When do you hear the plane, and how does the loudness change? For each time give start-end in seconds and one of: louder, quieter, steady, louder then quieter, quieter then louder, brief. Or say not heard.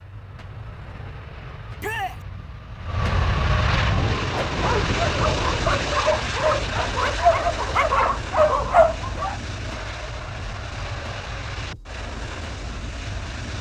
0.0-13.5 louder then quieter.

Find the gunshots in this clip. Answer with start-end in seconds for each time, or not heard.
not heard.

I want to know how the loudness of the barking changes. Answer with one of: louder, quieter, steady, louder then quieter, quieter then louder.
louder.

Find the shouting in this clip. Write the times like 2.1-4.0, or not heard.
1.8-2.2.